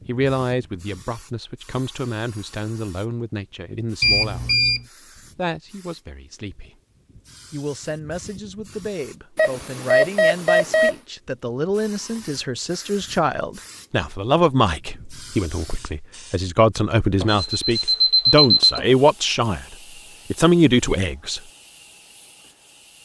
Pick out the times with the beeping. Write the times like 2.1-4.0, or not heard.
4.0-4.8, 9.3-10.9, 17.2-18.8.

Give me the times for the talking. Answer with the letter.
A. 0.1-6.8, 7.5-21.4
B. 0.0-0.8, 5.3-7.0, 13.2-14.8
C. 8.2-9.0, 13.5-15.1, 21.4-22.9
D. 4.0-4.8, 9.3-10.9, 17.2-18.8
A.